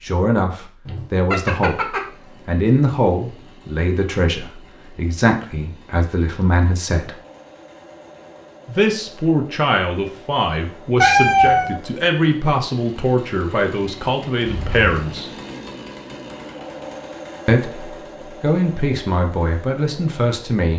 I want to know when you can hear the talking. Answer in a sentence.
The talking can be heard from 0.0 to 7.2 s, from 8.7 to 15.3 s and from 17.4 to 20.7 s.